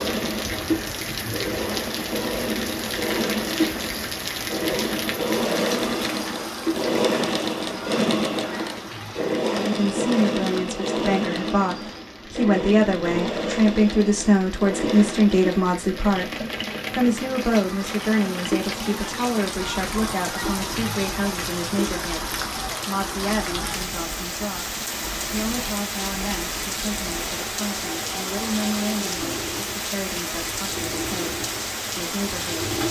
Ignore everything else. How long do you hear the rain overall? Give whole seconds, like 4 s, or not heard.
33 s.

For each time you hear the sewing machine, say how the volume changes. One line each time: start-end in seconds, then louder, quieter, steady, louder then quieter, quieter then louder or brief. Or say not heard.
0.0-32.8 quieter.